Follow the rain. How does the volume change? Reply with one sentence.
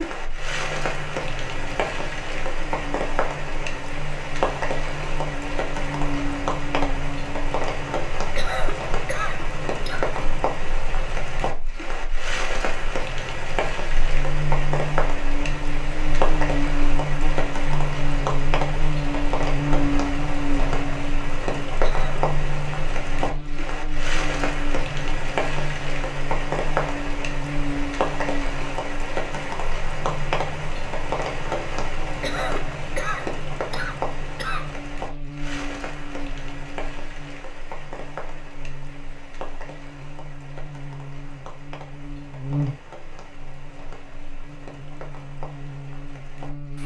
The loudness of the rain goes down.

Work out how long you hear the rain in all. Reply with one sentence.
The rain can be heard for 47 seconds in total.